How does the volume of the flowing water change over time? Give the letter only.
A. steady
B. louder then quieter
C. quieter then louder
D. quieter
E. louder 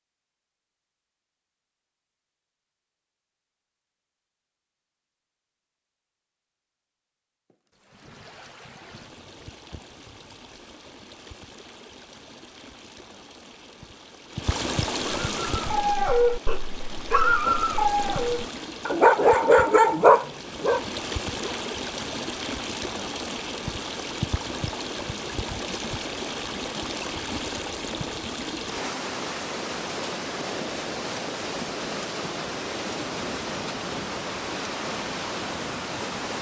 E.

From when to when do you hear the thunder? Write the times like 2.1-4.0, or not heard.
7.5-10.7.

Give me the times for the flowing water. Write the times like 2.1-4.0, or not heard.
7.8-36.3.